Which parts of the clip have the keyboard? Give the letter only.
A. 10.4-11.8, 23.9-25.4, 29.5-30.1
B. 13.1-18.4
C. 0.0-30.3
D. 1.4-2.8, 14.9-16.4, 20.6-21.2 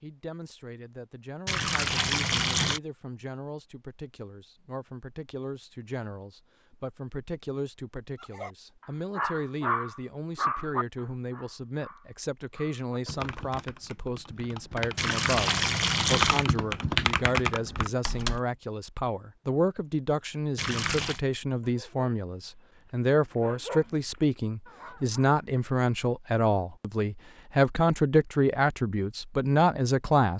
B.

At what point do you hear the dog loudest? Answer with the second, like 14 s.
10 s.